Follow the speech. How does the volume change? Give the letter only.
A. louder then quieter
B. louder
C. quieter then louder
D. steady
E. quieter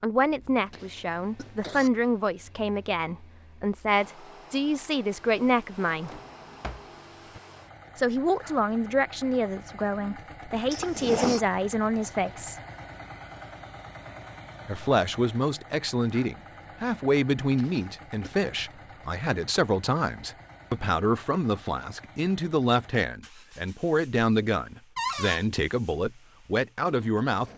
D.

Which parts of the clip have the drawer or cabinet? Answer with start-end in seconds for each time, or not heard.
5.4-7.4, 10.7-11.4, 24.9-25.4.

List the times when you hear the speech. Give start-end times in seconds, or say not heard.
0.0-6.2, 8.0-12.6, 14.7-27.5.